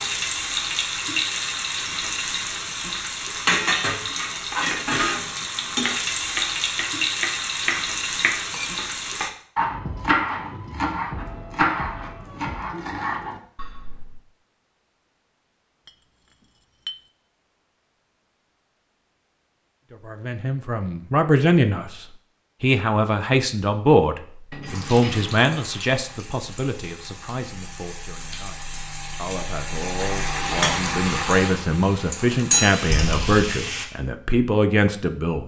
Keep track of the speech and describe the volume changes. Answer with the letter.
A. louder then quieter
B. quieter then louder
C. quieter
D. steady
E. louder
B.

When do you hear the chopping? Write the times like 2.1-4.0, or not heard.
4.5-14.2.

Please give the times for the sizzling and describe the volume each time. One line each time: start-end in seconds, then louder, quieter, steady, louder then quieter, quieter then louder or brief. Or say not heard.
0.0-9.3 steady
24.6-33.9 louder.